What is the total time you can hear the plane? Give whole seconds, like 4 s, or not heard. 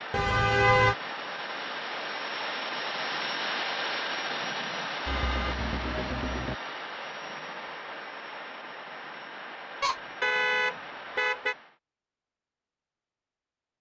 12 s.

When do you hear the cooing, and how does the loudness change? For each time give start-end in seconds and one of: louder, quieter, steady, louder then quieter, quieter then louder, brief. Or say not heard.
not heard.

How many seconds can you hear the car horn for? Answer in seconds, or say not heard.
4 s.